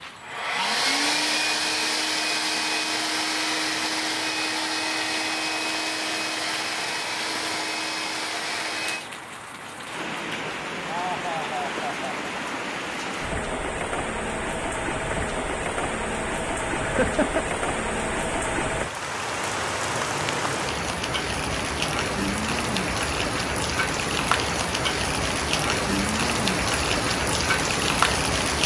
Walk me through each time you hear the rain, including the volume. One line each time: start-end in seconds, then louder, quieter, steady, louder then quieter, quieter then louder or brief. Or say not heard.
0.0-28.6 louder.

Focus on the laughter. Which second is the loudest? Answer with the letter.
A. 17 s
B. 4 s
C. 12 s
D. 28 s
A.